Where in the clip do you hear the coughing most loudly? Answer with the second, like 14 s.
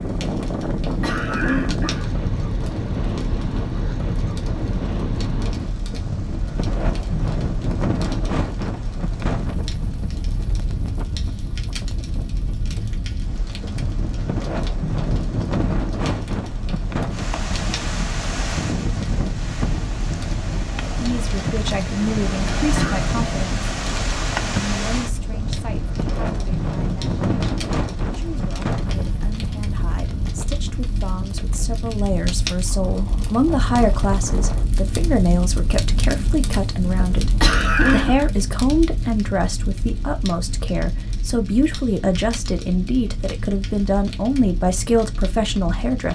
38 s.